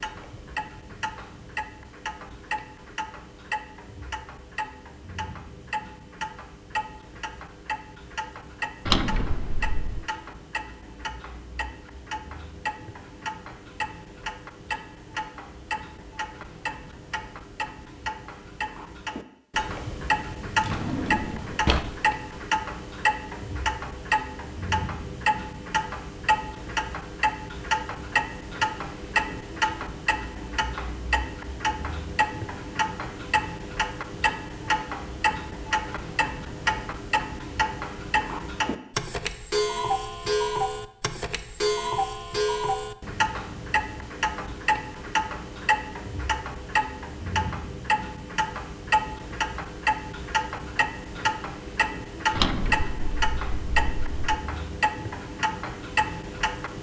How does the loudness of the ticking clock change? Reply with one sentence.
The loudness of the ticking clock goes up.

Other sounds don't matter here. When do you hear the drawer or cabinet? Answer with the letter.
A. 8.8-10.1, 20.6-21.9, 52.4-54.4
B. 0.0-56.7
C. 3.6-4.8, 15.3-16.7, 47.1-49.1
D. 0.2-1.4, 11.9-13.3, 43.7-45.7
A.